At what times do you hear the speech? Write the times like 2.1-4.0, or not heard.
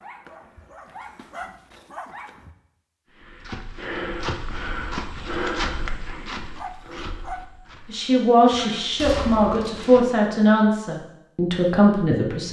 7.9-12.4.